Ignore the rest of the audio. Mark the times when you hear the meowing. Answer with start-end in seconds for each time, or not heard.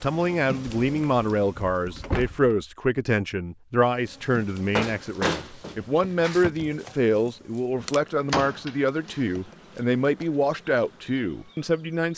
not heard.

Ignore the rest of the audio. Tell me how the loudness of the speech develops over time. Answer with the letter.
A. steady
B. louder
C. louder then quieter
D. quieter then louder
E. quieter
A.